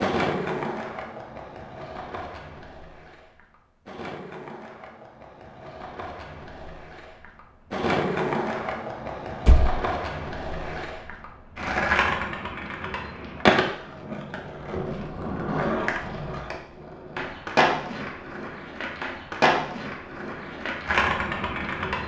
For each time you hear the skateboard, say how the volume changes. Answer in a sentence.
The skateboard can be heard from 0.0 to 22.0 s, getting louder.